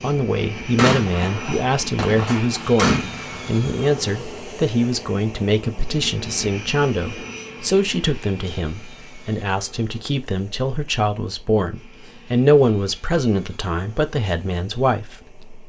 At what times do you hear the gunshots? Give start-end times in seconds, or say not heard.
0.8-3.6.